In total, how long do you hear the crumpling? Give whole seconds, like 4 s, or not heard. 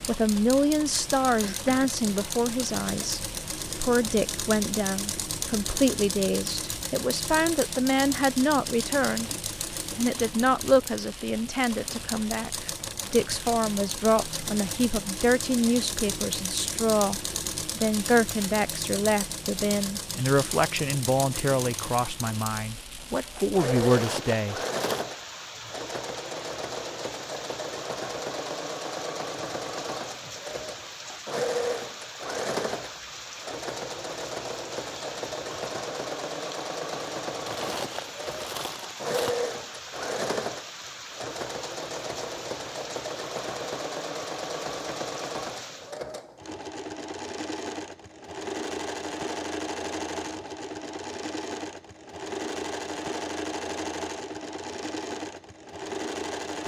3 s.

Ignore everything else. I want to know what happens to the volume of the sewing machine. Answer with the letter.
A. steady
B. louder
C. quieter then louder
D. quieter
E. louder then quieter
A.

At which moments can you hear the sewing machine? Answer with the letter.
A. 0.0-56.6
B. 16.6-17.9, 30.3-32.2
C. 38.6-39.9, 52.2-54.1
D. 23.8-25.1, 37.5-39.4
A.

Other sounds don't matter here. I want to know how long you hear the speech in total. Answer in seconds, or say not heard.
24 s.